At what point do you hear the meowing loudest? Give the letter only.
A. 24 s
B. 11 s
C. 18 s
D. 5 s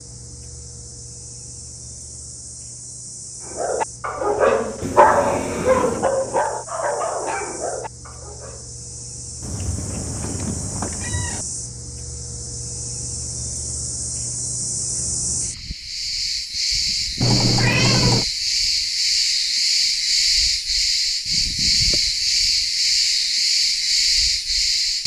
C.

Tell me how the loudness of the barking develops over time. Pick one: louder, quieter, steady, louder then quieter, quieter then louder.
quieter.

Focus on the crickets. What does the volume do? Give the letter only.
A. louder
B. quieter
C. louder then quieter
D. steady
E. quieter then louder
A.